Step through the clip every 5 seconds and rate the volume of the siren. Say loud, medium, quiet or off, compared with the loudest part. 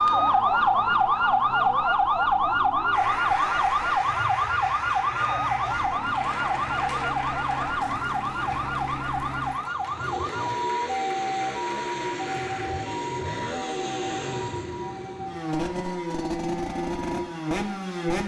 loud, medium, medium, quiet.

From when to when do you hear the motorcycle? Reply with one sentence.
You can hear the motorcycle from 0.0 to 18.2 s.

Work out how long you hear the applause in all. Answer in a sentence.
The applause can be heard for 10 seconds in total.